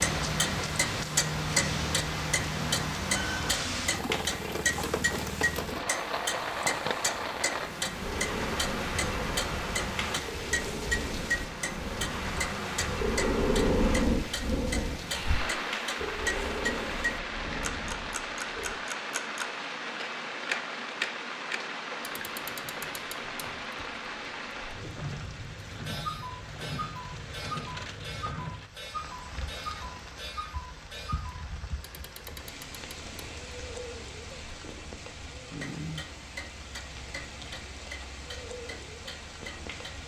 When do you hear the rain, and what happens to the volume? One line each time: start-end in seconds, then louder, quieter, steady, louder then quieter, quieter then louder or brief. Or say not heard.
0.0-40.0 quieter.